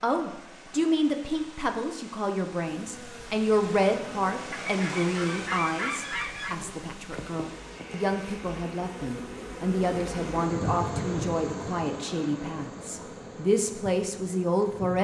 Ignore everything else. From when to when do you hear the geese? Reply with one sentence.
The geese can be heard from 4.5 to 6.5 s.